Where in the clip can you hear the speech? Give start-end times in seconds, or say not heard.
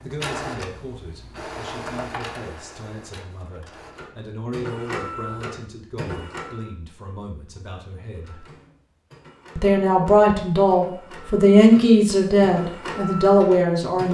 0.0-8.3, 9.6-14.0.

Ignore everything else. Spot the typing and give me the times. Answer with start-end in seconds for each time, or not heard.
not heard.